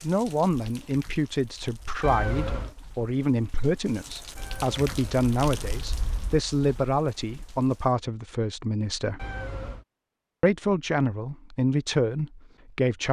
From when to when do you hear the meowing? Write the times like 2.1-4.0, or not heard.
2.0-2.8, 4.3-6.4, 9.2-9.8.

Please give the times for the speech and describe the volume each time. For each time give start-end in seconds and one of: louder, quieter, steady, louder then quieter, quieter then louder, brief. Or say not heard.
0.0-9.2 steady
10.4-13.0 brief.